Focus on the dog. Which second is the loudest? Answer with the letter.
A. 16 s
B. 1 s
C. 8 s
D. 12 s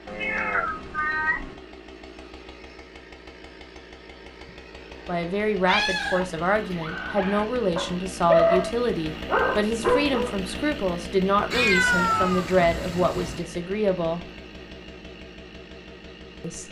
C.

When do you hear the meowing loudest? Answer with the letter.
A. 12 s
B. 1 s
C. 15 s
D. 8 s
A.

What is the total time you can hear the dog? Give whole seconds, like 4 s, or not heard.
4 s.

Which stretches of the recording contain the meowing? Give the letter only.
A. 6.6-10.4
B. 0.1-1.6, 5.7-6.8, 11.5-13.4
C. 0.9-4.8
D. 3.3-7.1
B.